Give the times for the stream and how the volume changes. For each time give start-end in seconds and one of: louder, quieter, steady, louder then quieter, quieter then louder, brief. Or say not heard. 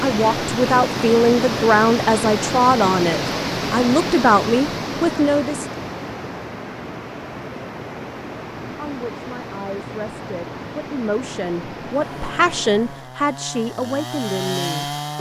0.0-13.1 quieter.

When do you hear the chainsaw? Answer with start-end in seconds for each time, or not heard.
11.9-15.1.